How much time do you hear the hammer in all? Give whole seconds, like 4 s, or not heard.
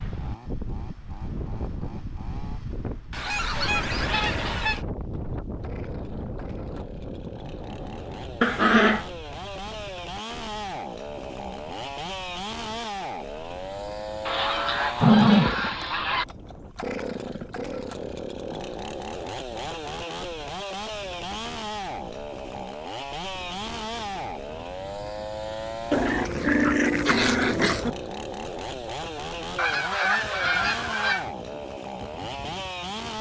not heard.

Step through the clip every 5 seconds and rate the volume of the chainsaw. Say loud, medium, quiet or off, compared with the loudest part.
quiet, medium, loud, loud, loud, loud, loud.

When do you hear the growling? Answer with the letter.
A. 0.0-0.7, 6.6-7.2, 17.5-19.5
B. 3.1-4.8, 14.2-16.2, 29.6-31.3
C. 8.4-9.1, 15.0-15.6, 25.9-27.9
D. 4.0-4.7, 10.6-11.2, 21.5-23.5
C.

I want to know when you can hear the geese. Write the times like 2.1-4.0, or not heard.
3.1-4.8, 14.2-16.2, 29.6-31.3.